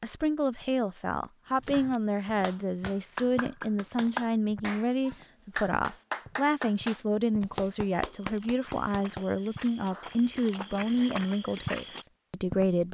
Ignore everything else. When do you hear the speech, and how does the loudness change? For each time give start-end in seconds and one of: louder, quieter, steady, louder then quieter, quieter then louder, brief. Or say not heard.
0.0-12.9 steady.